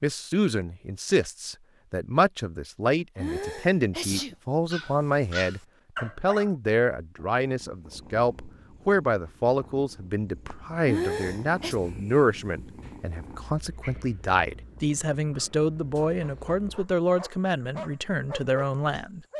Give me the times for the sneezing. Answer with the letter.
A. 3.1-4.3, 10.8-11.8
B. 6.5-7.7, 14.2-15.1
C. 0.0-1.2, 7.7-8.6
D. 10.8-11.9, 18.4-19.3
A.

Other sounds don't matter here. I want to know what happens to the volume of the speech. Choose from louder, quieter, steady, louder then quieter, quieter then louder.
steady.